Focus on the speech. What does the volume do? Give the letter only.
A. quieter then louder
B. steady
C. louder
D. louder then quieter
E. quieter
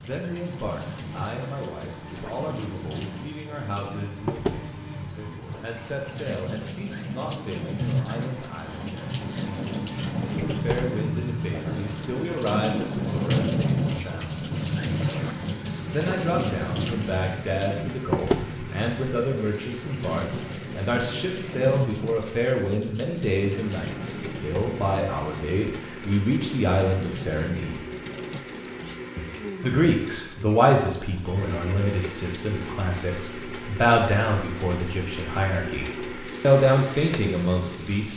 C.